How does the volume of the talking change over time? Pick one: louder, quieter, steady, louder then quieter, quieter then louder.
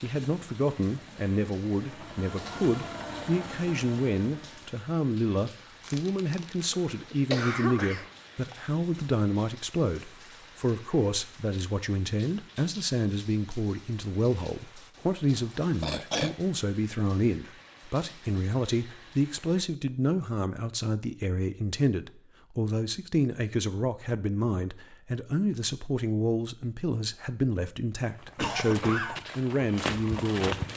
steady.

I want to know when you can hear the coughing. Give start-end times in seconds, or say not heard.
5.8-8.1, 15.2-16.4, 28.4-29.2.